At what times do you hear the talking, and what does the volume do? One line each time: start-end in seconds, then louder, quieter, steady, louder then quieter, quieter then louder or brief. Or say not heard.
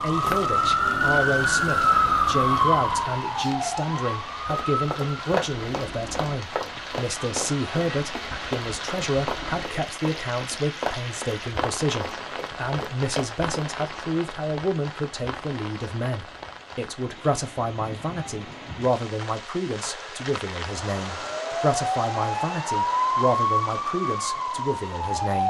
0.0-25.4 steady.